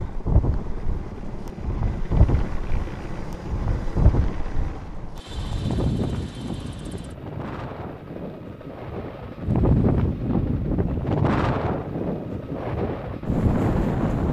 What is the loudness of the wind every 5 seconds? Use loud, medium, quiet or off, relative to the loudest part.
medium, loud, loud.